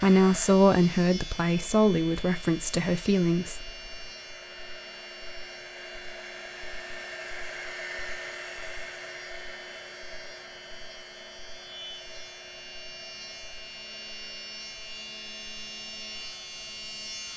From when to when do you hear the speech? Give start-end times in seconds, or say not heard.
0.0-3.7.